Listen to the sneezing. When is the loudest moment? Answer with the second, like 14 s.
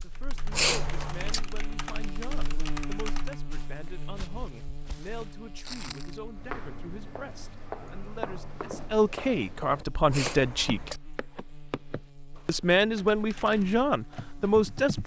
1 s.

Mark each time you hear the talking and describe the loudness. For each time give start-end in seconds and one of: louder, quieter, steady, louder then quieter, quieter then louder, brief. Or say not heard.
0.0-10.9 louder
12.4-15.0 brief.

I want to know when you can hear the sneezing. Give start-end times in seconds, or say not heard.
0.5-1.4, 10.1-11.0.